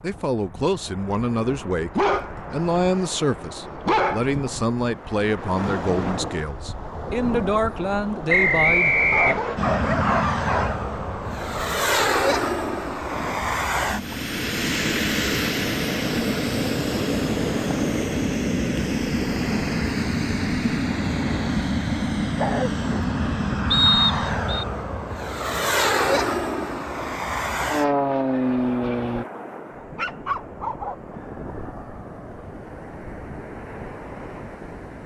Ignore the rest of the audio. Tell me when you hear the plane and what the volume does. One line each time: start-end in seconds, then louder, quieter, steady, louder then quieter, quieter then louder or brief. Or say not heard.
9.6-29.2 steady.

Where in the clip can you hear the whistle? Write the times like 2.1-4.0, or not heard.
8.2-9.6, 23.7-24.6.